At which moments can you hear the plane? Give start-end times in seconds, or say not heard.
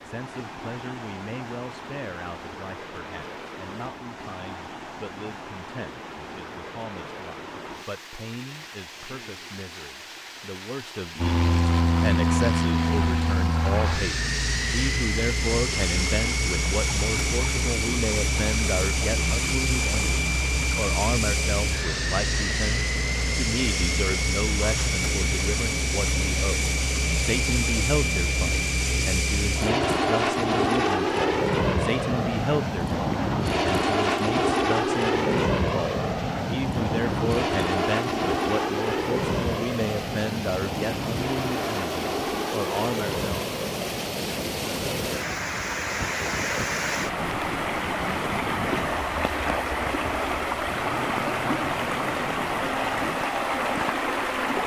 11.2-54.6.